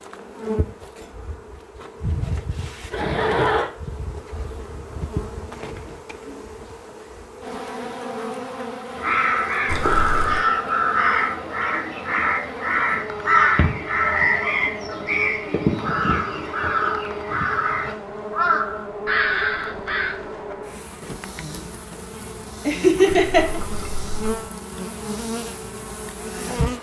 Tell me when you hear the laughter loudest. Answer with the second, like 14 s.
23 s.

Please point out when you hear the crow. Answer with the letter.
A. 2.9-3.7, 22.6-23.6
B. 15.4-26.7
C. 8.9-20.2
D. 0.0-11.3
C.